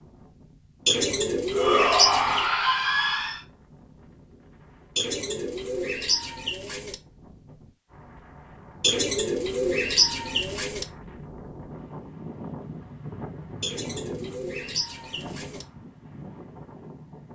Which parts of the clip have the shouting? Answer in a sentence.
The shouting can be heard from 1.5 to 3.4 s.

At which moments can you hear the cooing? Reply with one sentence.
You can hear the cooing from 0.8 to 2.5 s, from 5.0 to 7.0 s, from 8.8 to 10.8 s and from 13.6 to 15.7 s.